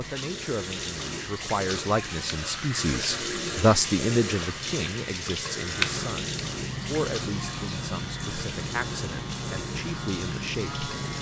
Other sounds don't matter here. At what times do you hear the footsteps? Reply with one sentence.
The footsteps can't be heard in this clip.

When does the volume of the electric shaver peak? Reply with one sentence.
The volume of the electric shaver peaks at 6 seconds.